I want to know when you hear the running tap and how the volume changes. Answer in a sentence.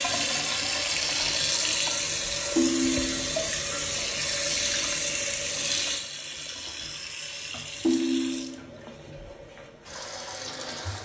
You can hear the running tap from 0.0 to 10.9 s, getting quieter.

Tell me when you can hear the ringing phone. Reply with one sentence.
You can hear the ringing phone from 2.5 to 3.3 s and from 7.8 to 8.6 s.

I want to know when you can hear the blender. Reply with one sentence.
The blender can't be heard in this clip.